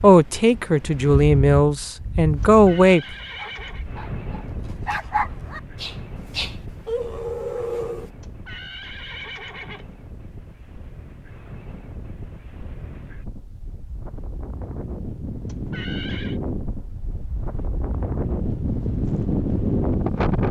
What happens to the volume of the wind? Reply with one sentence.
The loudness of the wind goes down, then up.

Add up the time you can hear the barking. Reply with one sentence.
The barking can be heard for 6 seconds in total.